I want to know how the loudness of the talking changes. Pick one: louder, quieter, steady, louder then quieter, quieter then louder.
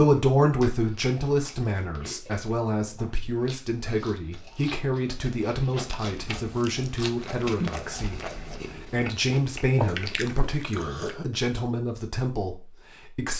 quieter.